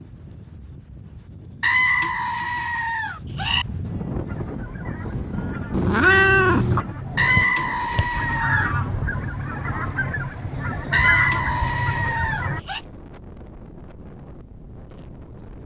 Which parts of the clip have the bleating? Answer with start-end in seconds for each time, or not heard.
1.6-3.6, 7.2-8.8, 10.9-12.8.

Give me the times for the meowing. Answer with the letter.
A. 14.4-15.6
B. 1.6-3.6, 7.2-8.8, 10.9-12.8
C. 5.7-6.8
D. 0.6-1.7
C.